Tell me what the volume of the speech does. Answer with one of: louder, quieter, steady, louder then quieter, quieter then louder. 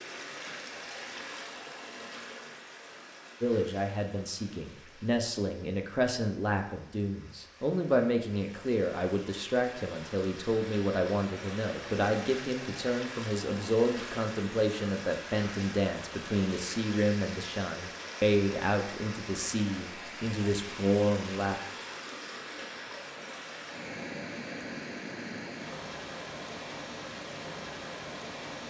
steady.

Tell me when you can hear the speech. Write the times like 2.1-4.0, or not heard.
3.4-21.6.